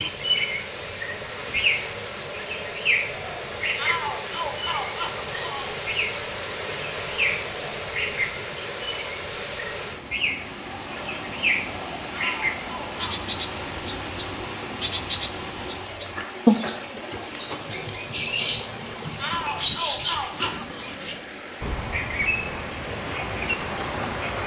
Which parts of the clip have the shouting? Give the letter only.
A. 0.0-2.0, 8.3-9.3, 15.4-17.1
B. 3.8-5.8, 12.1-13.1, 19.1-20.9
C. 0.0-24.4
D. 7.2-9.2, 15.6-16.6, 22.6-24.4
B.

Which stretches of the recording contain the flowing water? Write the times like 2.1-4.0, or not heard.
0.0-24.4.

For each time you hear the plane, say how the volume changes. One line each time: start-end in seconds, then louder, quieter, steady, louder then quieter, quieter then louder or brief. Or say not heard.
not heard.